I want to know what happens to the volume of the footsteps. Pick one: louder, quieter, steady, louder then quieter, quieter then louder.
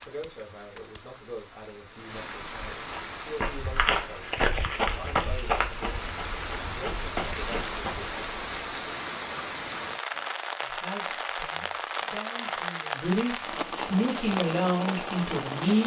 quieter then louder.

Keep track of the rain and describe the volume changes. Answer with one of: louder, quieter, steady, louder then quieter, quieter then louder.
louder.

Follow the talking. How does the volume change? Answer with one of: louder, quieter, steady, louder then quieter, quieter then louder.
louder.